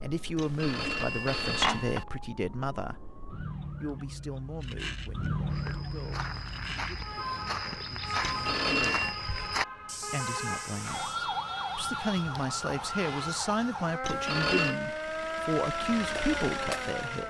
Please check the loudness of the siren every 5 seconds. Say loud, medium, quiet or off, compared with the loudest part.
medium, loud, loud, loud.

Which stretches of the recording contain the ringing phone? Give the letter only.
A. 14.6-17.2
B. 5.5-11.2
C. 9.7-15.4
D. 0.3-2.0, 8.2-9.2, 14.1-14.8
D.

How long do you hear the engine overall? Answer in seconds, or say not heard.
3 s.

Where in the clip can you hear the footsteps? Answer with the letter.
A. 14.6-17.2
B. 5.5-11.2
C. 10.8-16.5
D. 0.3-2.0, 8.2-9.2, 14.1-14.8
B.